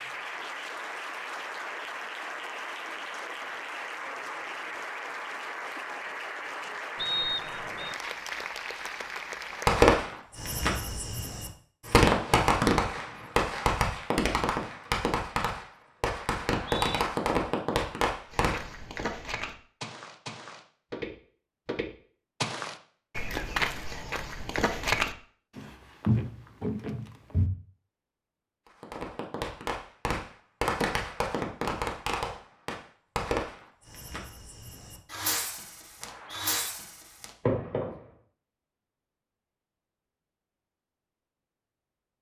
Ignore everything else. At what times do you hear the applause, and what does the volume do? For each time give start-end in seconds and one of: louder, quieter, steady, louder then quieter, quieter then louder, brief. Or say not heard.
0.0-9.8 steady.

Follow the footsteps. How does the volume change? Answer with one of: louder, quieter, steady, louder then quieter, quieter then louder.
louder.